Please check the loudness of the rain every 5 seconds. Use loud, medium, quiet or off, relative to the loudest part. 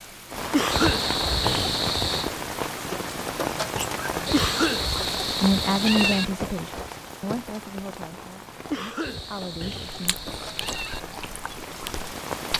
loud, medium, medium.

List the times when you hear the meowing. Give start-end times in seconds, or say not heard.
0.7-2.3, 4.2-6.2, 9.0-11.0.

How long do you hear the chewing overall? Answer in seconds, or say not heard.
3 s.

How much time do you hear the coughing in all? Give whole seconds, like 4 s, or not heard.
3 s.